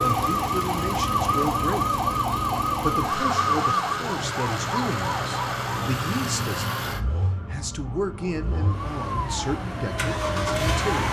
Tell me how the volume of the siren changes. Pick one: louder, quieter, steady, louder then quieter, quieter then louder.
quieter then louder.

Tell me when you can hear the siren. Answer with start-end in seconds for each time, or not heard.
0.0-11.0.